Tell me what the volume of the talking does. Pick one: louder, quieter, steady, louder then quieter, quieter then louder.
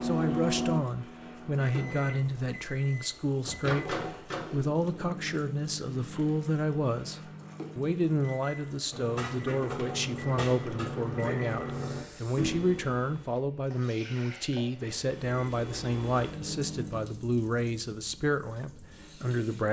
steady.